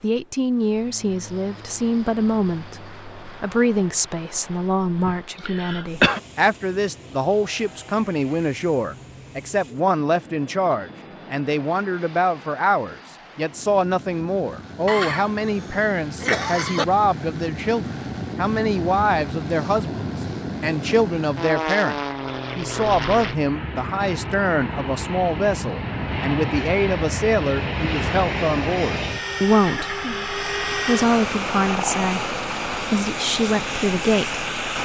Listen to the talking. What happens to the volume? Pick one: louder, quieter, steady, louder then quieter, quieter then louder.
steady.